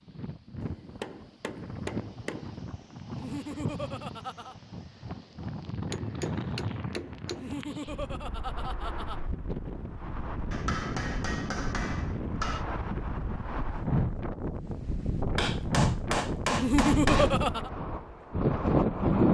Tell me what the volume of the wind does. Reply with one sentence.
The volume of the wind goes up.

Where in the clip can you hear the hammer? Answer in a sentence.
You can hear the hammer from 0.6 to 2.5 s, from 5.8 to 7.7 s, from 10.5 to 12.7 s and from 15.3 to 17.4 s.